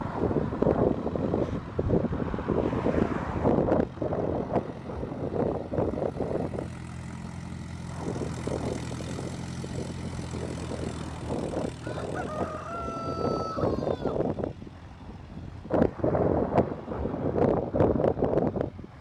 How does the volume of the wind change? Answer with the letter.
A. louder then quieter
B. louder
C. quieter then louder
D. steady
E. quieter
C.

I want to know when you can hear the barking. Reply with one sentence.
The barking can't be heard in this clip.